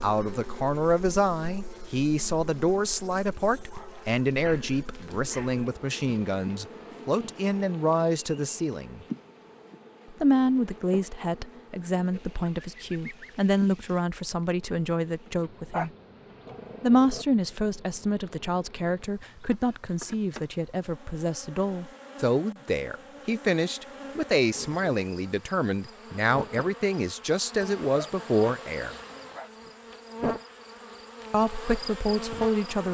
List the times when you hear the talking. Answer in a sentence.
The talking can be heard from 0.0 to 9.1 s, from 10.1 to 15.9 s, from 16.8 to 28.9 s and from 31.3 to 32.9 s.